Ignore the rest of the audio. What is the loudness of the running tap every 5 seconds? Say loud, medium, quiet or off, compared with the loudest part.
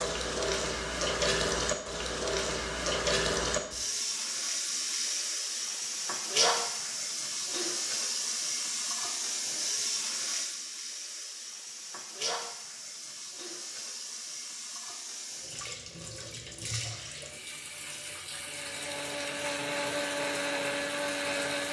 loud, loud, medium, medium, medium.